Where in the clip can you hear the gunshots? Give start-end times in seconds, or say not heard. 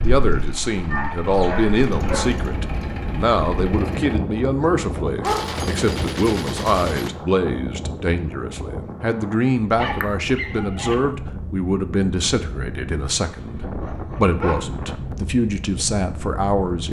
5.2-7.1.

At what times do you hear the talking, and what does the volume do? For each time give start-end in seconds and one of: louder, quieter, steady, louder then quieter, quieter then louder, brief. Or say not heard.
0.0-16.8 steady.